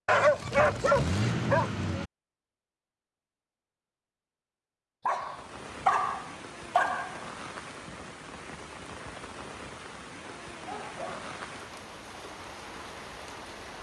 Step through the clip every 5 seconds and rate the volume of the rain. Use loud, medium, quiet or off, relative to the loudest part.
off, loud, loud.